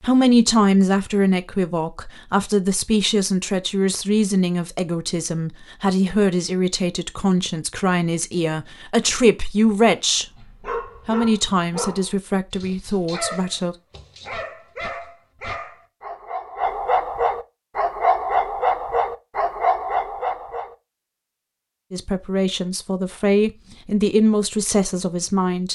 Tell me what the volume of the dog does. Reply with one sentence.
The volume of the dog goes up.